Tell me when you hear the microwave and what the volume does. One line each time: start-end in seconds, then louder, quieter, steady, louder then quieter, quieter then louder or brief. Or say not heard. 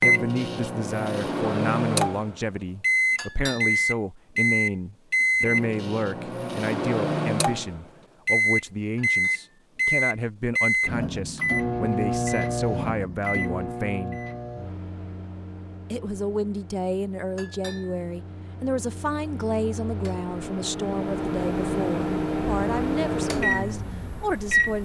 0.0-24.8 quieter then louder.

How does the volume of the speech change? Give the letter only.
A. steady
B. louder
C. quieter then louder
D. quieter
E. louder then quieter
A.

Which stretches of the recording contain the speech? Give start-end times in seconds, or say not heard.
0.0-14.2, 15.9-24.8.